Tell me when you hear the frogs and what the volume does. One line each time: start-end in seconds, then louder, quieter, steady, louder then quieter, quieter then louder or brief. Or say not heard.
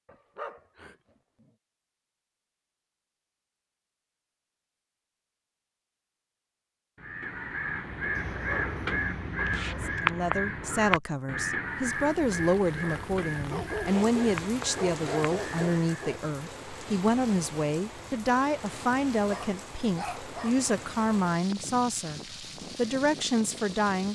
not heard.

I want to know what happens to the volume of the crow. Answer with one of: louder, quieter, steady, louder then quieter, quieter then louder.
quieter.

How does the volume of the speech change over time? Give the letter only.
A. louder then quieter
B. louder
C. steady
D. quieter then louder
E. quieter
C.